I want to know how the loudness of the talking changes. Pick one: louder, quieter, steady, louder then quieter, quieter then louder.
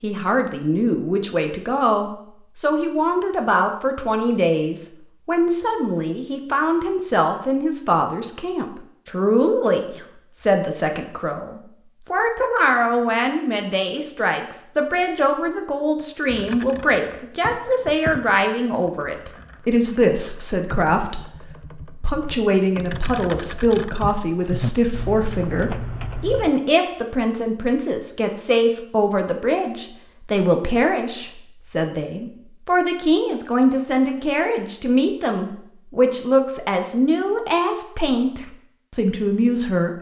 steady.